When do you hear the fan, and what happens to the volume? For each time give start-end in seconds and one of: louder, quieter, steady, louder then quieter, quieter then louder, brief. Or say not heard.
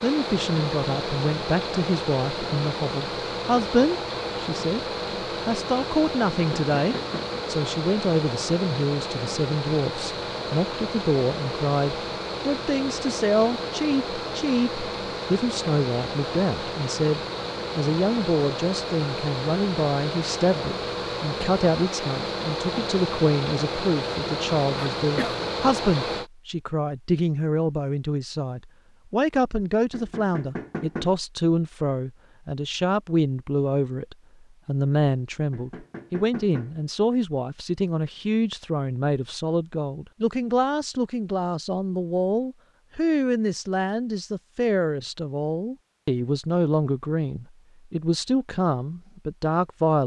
0.0-26.3 steady.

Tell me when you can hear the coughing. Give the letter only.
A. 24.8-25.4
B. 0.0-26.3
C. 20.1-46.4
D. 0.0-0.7
A.